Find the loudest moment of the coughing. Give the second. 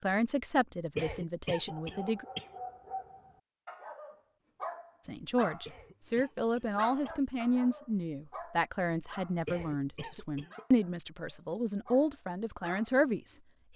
1 s.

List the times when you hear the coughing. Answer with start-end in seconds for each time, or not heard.
0.9-2.5, 5.7-7.2, 9.4-10.7.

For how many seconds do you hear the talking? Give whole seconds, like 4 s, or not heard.
11 s.